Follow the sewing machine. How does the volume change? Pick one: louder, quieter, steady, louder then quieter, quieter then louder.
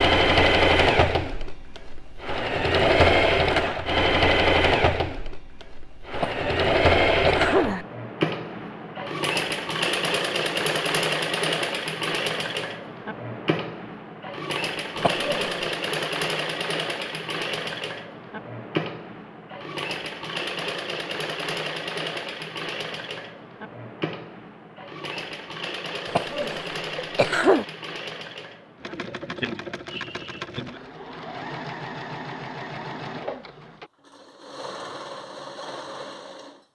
quieter.